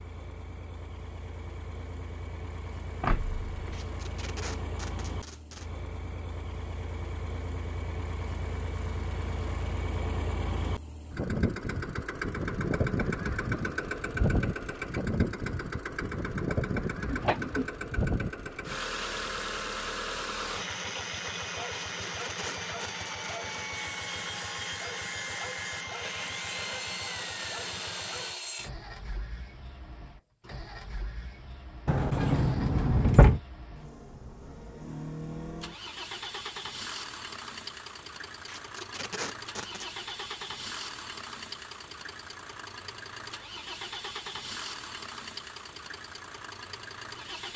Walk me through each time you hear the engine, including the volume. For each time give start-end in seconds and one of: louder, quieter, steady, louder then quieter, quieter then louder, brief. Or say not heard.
0.0-47.5 louder then quieter.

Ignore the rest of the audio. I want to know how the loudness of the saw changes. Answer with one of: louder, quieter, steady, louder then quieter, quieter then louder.
steady.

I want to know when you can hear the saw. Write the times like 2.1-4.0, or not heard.
23.8-28.7.